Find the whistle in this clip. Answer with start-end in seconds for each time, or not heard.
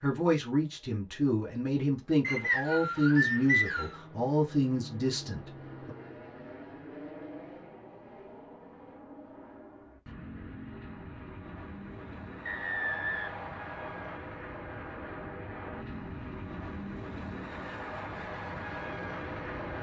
2.2-4.0, 12.4-14.2.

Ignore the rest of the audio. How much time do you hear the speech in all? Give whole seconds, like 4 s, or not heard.
6 s.